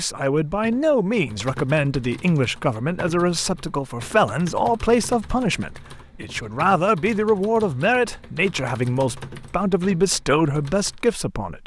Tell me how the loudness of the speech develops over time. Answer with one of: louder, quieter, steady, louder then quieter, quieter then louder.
steady.